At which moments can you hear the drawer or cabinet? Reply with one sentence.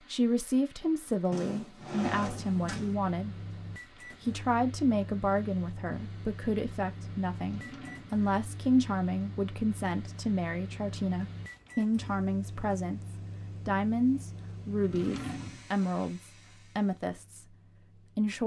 You can hear the drawer or cabinet from 1.3 to 3.0 s, from 7.3 to 8.2 s and from 14.8 to 15.7 s.